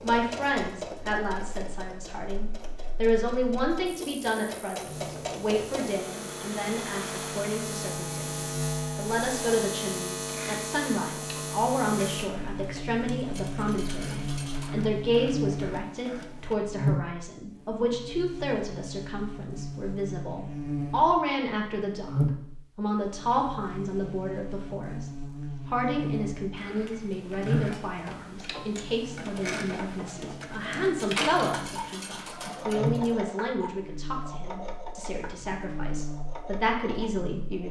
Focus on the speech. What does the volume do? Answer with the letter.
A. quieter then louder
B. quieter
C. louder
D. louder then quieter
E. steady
E.